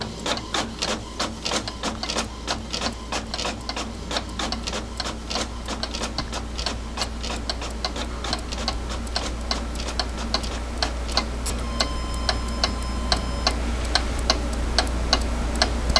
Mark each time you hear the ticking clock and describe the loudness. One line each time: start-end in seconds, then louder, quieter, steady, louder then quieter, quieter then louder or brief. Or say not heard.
0.0-15.9 louder.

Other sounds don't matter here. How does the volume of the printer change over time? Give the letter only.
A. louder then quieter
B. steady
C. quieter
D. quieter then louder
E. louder
C.